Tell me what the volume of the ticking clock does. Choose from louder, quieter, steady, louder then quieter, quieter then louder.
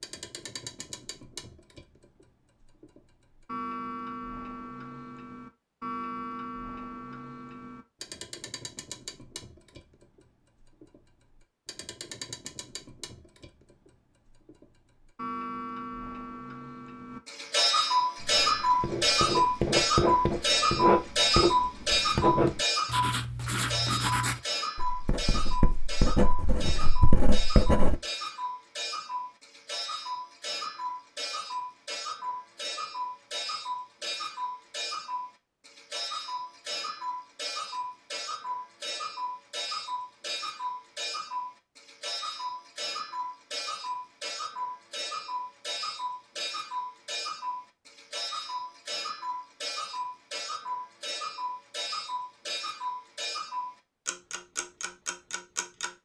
louder then quieter.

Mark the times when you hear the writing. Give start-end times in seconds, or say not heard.
18.2-28.0.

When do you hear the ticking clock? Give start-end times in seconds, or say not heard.
0.0-55.9.